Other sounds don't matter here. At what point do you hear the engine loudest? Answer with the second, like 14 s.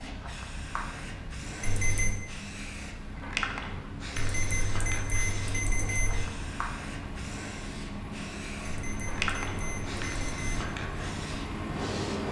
12 s.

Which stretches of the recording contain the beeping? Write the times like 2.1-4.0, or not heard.
1.6-2.2, 4.2-6.2, 8.7-10.7.